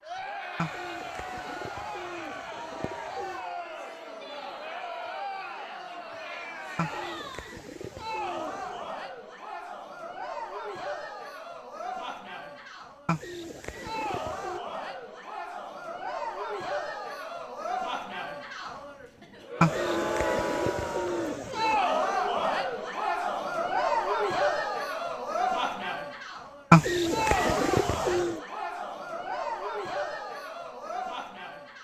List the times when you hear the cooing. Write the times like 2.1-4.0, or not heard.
0.6-3.4, 6.8-8.8, 13.1-14.6, 19.6-21.8, 26.7-28.4.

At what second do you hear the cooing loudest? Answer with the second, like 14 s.
27 s.